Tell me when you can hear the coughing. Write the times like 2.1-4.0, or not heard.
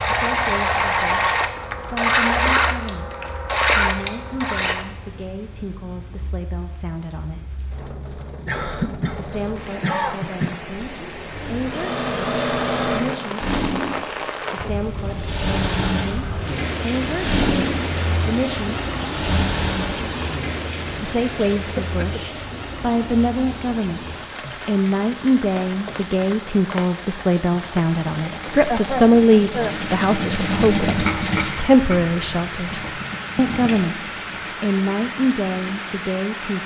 8.4-10.6, 21.8-22.2, 28.6-29.8.